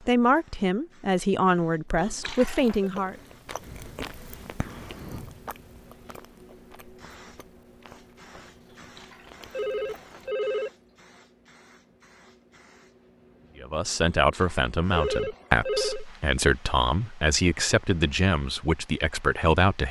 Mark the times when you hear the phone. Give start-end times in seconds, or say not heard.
1.9-2.9, 8.7-10.7, 14.1-16.1.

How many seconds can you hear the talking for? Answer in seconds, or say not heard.
9 s.